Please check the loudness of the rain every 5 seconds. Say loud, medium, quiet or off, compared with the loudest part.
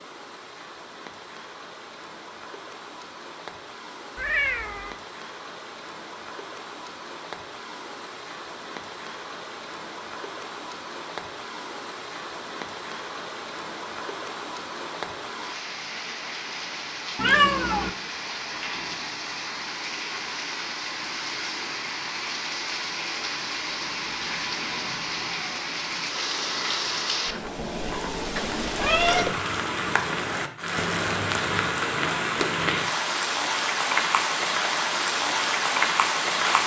quiet, quiet, quiet, medium, medium, medium, loud, loud.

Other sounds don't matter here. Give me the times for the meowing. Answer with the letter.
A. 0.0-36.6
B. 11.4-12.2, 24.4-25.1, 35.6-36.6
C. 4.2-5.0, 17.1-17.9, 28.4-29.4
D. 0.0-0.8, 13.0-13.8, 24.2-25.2
C.